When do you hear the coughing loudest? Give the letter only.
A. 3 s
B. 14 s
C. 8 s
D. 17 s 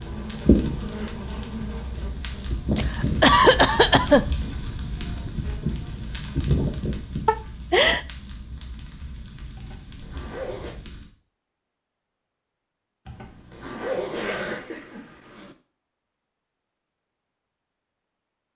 A.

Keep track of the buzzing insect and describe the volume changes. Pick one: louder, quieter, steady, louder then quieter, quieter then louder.
quieter then louder.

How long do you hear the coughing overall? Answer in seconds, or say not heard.
4 s.